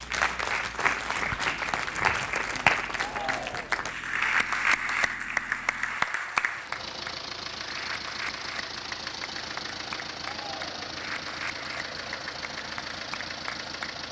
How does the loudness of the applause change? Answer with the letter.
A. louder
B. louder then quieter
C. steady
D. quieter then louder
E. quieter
E.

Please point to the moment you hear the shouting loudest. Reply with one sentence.
The volume of the shouting peaks at 3 seconds.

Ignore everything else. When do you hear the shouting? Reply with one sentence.
You can hear the shouting from 3.0 to 3.9 s and from 10.2 to 10.8 s.